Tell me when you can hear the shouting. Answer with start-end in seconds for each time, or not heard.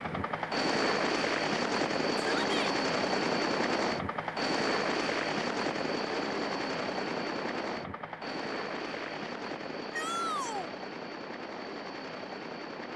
2.1-2.8, 9.9-10.7.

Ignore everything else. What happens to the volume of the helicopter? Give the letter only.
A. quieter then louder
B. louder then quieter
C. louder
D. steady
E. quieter
E.